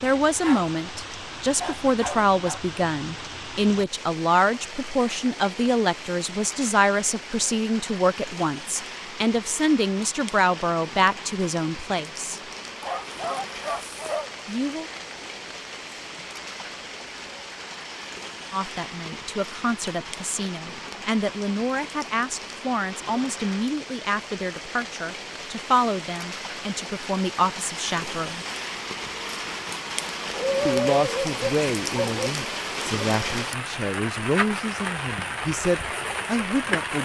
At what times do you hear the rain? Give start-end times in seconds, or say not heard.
0.0-37.0.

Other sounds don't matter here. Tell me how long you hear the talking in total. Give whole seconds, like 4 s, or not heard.
29 s.